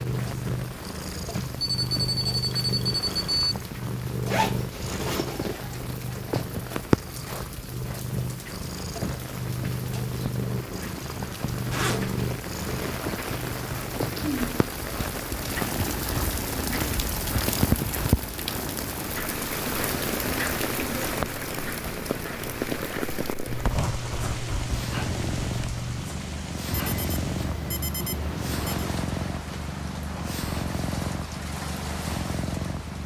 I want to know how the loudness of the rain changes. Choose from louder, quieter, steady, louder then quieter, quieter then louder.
louder then quieter.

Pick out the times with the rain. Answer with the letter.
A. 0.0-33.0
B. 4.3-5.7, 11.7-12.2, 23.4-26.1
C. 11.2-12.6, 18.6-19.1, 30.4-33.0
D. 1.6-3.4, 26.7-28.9
A.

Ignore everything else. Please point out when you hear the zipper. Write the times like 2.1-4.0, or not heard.
4.3-5.7, 11.7-12.2, 23.4-26.1.